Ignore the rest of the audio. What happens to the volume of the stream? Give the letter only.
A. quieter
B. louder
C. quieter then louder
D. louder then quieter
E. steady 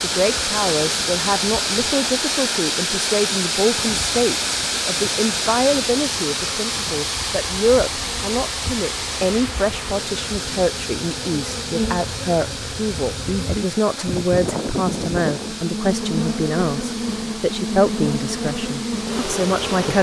A.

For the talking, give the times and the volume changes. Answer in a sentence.
You can hear the talking from 0.0 to 19.9 s, at a steady volume.